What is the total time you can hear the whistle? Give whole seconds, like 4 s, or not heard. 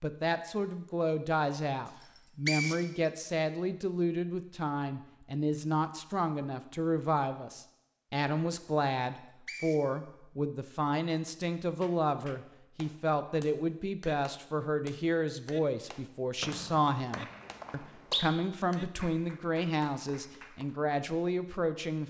3 s.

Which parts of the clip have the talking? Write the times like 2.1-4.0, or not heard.
0.0-22.0.